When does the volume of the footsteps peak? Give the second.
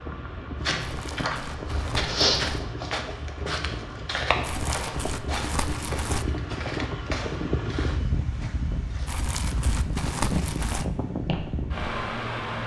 2 s.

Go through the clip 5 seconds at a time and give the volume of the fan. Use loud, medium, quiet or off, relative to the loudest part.
medium, loud, loud.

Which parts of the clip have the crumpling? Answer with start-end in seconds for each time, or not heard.
0.8-2.6, 4.4-6.2, 9.1-10.8.